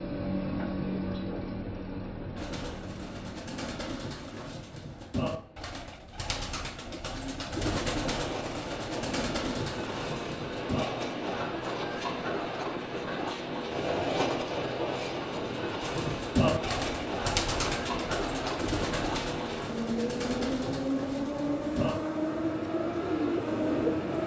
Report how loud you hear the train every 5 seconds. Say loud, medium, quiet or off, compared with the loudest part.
medium, medium, loud, loud, loud.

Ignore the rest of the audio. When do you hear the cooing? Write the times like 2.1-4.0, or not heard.
2.4-10.8, 15.8-24.2.